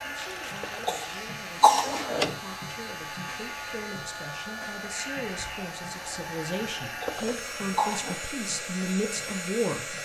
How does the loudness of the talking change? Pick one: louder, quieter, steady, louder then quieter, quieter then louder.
louder.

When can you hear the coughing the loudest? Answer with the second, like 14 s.
2 s.